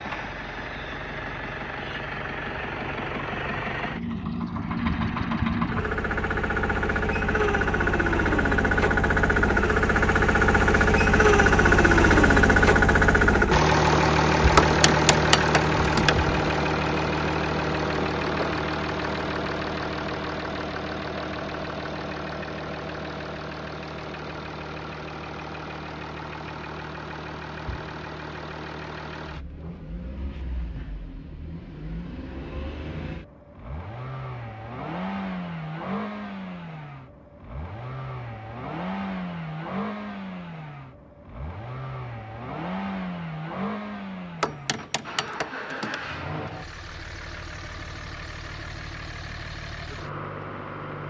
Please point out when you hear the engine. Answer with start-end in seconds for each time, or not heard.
0.0-51.0.